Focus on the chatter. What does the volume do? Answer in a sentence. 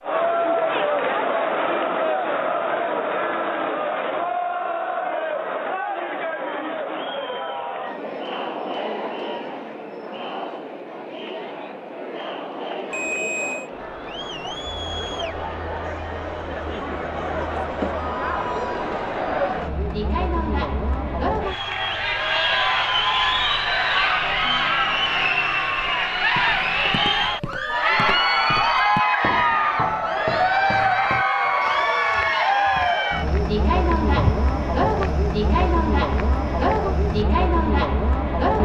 The loudness of the chatter goes down, then up.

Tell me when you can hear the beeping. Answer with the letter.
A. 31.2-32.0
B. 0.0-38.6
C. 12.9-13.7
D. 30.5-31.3
C.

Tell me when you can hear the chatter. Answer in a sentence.
The chatter can be heard from 0.0 to 38.6 s.